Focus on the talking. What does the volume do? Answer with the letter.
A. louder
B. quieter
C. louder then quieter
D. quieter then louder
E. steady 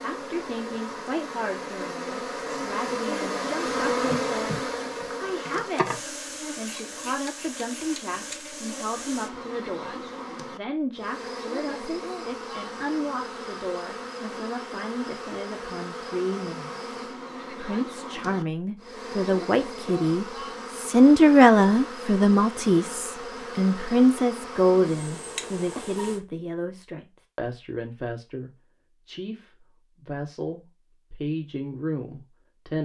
C.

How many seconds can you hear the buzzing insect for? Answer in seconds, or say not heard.
26 s.